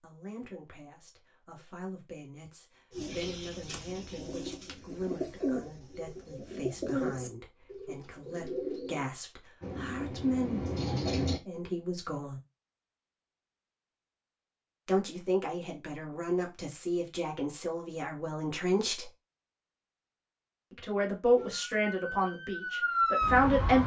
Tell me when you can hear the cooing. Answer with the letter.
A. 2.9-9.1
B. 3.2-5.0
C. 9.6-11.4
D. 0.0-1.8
A.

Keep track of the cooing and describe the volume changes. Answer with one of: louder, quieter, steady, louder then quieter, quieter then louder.
louder then quieter.